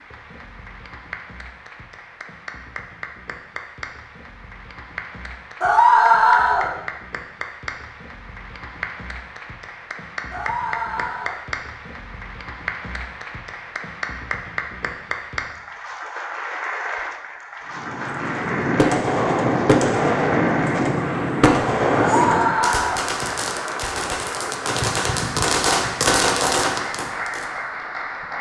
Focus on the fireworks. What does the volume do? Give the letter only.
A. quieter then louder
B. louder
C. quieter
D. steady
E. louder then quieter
A.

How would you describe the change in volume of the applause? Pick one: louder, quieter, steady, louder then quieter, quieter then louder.
louder.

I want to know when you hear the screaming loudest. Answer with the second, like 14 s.
6 s.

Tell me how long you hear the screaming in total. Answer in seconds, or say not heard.
3 s.